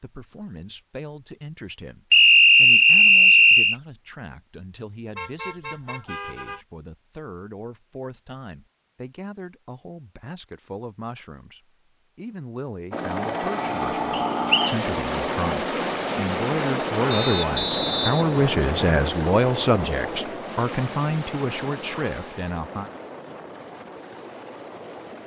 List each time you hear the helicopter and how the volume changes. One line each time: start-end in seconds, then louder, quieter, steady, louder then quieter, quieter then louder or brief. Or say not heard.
12.9-25.2 quieter.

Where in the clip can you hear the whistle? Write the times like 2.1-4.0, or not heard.
2.1-3.8, 14.1-14.8, 17.1-19.1.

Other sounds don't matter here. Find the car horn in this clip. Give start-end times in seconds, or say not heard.
5.2-6.7, 17.2-17.6.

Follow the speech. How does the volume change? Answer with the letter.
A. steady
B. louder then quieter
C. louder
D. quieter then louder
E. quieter
C.